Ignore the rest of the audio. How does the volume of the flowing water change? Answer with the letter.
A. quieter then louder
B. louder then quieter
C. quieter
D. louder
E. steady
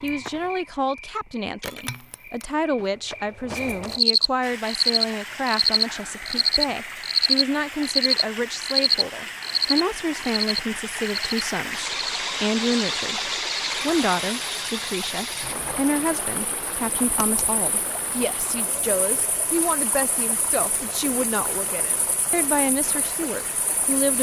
B.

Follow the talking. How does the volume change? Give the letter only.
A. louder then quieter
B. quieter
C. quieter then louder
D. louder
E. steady
E.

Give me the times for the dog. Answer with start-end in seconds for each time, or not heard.
not heard.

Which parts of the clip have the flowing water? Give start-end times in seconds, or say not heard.
4.4-24.1.